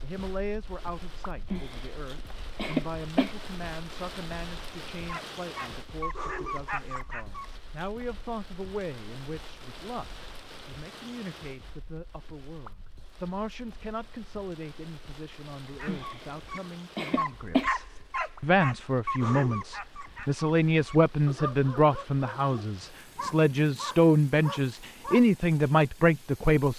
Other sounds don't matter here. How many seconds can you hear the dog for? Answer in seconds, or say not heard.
12 s.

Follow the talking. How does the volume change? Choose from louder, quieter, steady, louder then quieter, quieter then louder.
louder.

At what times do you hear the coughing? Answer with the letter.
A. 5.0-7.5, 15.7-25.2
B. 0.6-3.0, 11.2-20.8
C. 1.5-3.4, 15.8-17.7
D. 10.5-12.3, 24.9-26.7
C.